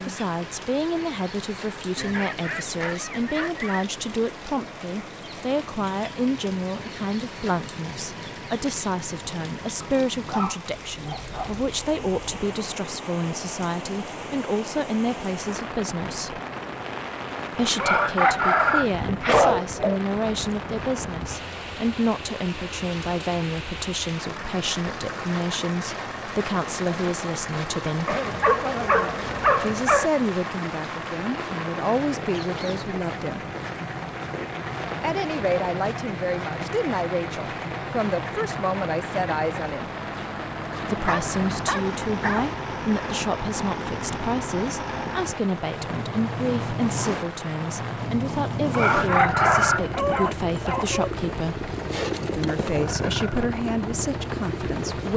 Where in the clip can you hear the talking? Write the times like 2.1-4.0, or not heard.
0.1-16.4, 17.5-28.2, 29.6-33.5, 35.0-39.9, 40.9-51.7, 52.4-55.1.